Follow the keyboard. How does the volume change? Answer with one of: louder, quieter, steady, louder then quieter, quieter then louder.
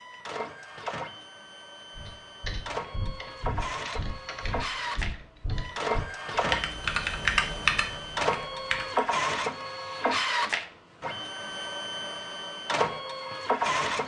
louder.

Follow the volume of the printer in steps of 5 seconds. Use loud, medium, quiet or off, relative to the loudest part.
medium, loud, loud.